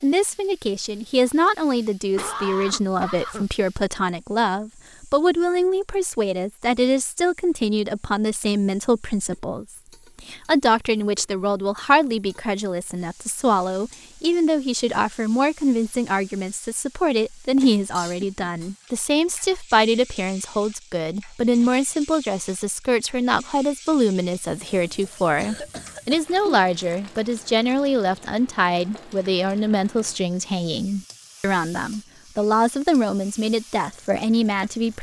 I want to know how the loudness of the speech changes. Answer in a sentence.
The volume of the speech stays about the same.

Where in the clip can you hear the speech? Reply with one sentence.
The speech can be heard from 0.0 to 34.9 s.